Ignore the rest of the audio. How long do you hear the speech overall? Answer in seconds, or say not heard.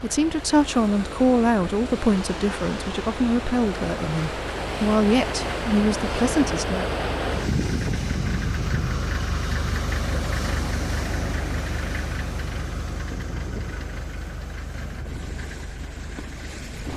7 s.